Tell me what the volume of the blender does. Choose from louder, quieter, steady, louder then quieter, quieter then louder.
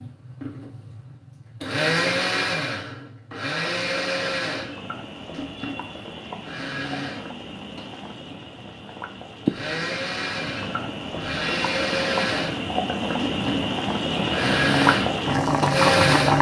quieter then louder.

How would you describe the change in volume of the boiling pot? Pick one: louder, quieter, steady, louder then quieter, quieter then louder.
louder.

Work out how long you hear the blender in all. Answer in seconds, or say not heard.
16 s.